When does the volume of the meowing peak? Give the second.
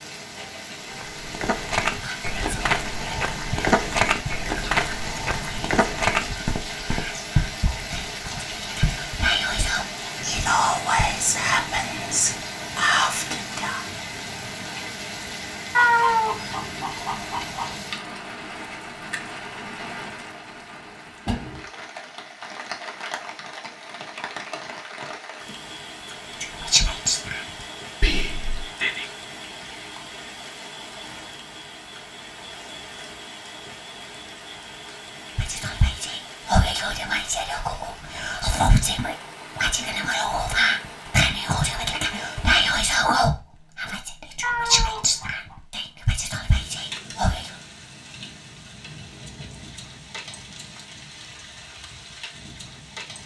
16 s.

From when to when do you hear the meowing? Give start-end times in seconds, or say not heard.
15.8-17.8, 44.4-45.5.